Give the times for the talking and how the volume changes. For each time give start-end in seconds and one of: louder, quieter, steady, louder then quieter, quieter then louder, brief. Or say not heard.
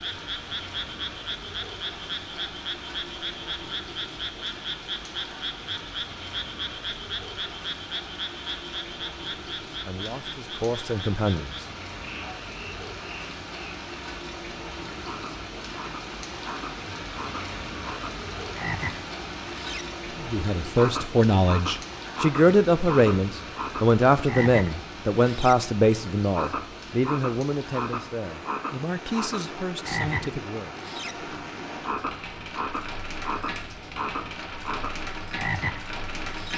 9.8-11.7 brief
20.2-30.8 quieter.